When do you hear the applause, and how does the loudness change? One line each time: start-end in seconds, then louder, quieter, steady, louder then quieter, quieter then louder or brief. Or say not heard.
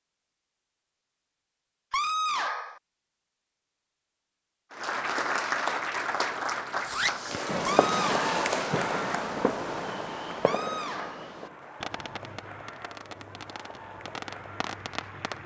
4.7-15.4 quieter.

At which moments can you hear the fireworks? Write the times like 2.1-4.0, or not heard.
6.8-15.4.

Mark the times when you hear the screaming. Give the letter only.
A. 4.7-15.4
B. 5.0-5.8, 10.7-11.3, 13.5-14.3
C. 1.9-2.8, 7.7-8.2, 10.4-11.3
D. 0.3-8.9
C.